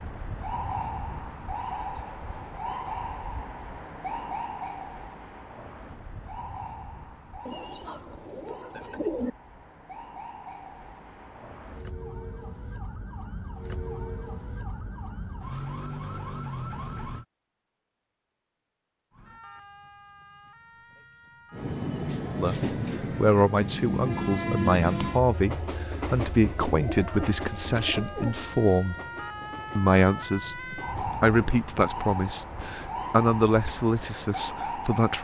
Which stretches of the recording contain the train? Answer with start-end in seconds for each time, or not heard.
21.5-33.2.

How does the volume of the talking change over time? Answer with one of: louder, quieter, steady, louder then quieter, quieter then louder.
steady.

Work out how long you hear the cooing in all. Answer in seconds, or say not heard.
4 s.